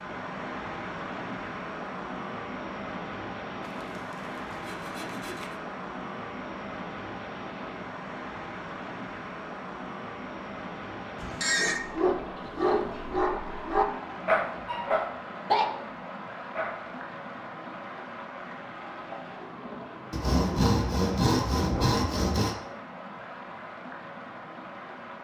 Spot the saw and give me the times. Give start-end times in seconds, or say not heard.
3.6-5.5, 20.1-22.6.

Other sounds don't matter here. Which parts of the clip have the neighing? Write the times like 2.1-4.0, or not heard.
11.2-11.8.